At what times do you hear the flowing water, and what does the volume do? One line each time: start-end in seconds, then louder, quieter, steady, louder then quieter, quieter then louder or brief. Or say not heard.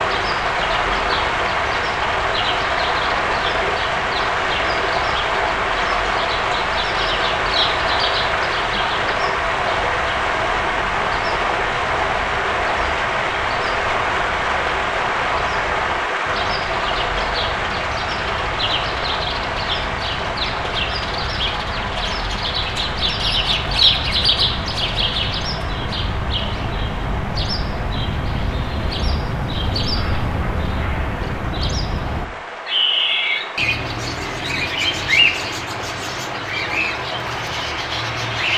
0.0-38.5 quieter.